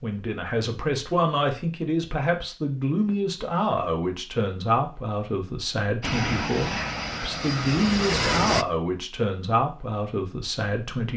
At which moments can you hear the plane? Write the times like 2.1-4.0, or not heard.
6.0-8.7.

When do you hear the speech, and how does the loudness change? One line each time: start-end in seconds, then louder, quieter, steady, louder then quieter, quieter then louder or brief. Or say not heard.
0.0-11.1 steady.